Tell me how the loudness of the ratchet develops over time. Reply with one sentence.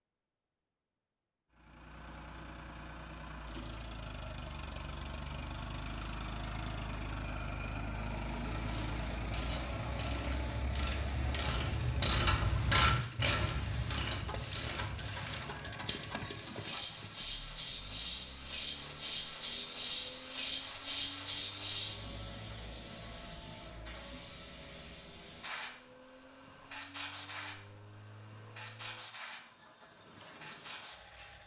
The volume of the ratchet goes up, then down.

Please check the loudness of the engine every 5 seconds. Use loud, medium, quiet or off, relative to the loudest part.
medium, loud, loud, medium, quiet, quiet, quiet.